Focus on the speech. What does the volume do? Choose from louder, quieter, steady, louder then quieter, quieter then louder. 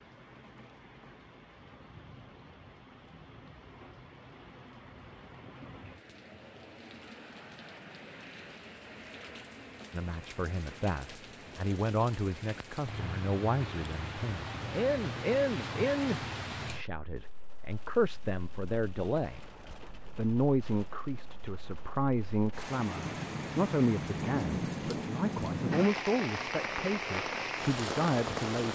steady.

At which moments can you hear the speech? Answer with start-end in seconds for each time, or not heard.
9.9-28.6.